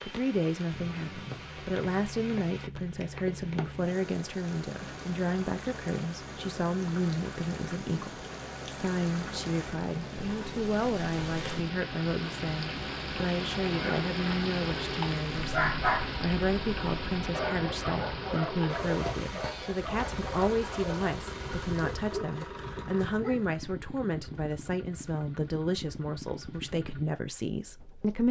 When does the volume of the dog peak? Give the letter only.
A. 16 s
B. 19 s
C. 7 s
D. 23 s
A.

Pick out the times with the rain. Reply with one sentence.
The rain can be heard from 0.0 to 22.1 s.